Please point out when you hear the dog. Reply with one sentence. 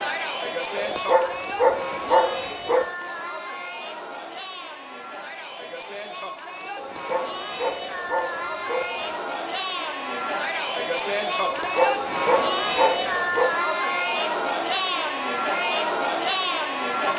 The dog can be heard from 0.8 to 2.9 s, from 6.8 to 9.2 s and from 11.4 to 13.5 s.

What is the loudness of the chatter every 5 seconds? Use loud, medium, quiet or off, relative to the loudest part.
medium, medium, loud, loud.